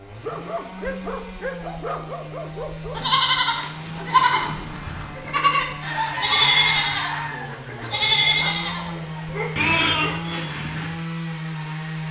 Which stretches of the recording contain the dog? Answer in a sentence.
You can hear the dog from 0.2 to 3.0 s and from 7.7 to 10.2 s.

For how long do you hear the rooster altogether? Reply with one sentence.
The rooster can be heard for 2 seconds in total.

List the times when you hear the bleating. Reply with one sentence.
You can hear the bleating from 3.0 to 10.9 s.